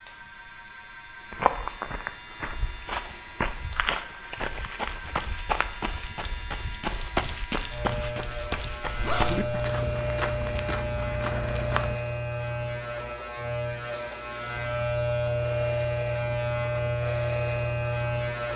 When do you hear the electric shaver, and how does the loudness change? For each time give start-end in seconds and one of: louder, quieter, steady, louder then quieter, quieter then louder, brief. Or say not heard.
0.0-18.5 louder.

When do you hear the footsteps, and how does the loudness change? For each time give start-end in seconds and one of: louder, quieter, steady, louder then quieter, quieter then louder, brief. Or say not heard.
1.2-12.0 steady.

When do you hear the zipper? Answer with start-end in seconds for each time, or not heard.
8.9-9.5.